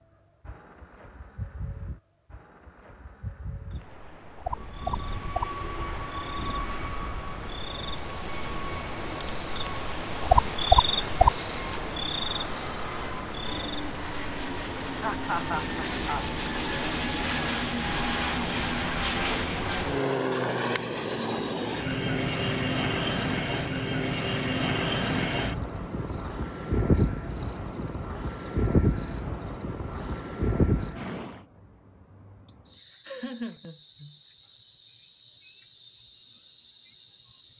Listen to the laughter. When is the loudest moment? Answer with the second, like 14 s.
15 s.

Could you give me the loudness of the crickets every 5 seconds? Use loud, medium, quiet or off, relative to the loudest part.
quiet, medium, loud, quiet, quiet, quiet, quiet, quiet.